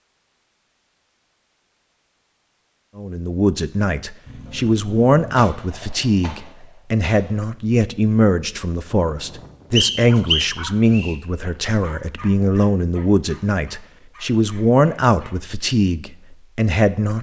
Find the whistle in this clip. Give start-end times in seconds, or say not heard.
9.8-11.2.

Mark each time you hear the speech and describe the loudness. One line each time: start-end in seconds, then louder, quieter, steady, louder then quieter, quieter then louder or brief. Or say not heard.
3.0-17.1 steady.